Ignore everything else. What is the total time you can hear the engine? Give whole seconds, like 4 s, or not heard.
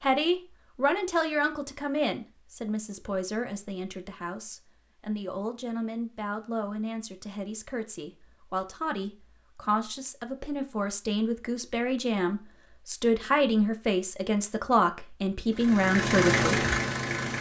2 s.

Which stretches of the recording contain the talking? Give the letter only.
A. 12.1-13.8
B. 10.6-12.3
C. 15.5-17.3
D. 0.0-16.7
D.